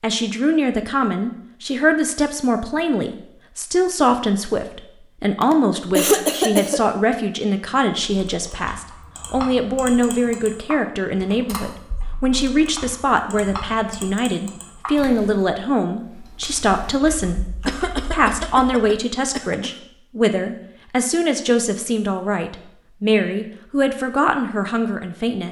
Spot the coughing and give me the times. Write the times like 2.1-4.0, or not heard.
5.4-6.8, 17.6-19.7.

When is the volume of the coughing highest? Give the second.
6 s.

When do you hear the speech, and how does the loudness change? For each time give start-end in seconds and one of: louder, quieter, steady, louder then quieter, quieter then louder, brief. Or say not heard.
0.0-25.4 steady.